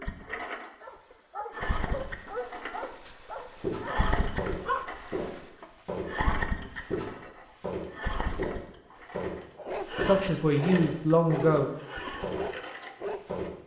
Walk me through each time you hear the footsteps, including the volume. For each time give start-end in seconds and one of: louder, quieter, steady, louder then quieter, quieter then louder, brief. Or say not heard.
3.5-13.6 steady.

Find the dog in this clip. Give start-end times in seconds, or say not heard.
0.2-5.8, 9.6-13.6.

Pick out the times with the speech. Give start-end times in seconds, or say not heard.
10.0-11.7.